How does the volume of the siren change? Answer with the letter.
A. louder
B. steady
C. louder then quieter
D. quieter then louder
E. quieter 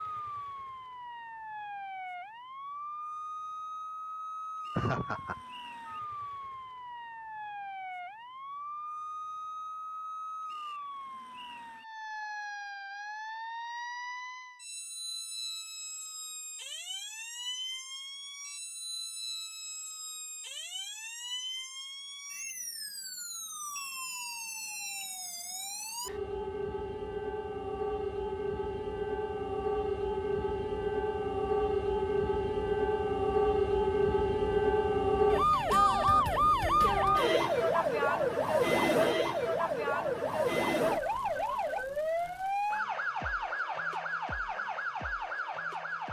A.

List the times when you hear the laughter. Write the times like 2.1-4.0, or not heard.
4.8-5.4.